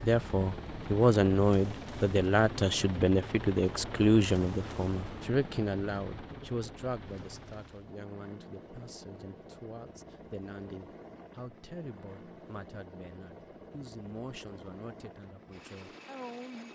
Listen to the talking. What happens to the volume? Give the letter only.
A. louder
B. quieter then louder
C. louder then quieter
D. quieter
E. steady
D.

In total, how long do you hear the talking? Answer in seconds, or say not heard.
17 s.